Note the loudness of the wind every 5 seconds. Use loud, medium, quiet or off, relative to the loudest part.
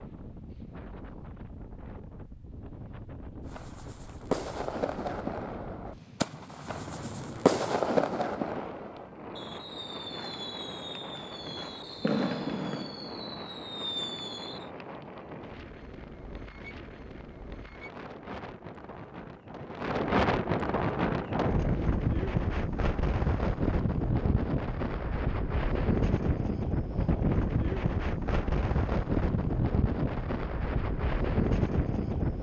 quiet, quiet, quiet, quiet, loud, loud, loud.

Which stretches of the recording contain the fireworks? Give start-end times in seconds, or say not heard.
3.5-14.7.